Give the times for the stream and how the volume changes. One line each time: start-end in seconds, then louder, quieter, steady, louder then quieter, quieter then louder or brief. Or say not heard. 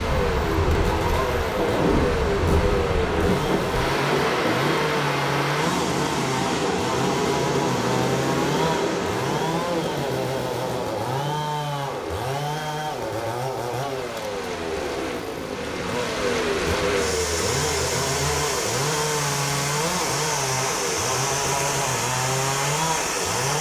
0.0-23.5 quieter then louder.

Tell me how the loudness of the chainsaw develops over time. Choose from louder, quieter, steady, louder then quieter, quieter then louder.
steady.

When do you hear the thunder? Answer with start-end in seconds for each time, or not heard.
1.6-5.5.